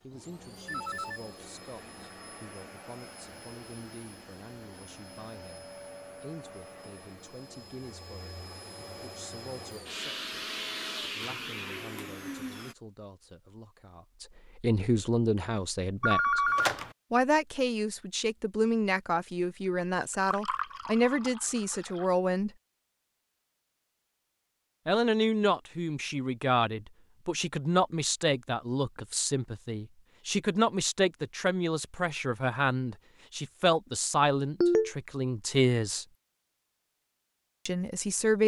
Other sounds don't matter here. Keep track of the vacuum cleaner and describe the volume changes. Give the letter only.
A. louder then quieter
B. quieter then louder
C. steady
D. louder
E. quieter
D.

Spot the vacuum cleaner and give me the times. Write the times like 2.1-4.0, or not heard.
0.0-12.8.